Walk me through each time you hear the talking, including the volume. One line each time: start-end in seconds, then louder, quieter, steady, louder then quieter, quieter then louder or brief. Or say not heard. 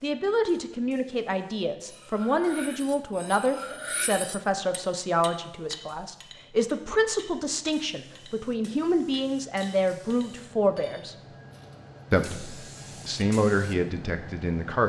0.0-11.2 steady
12.1-14.8 brief.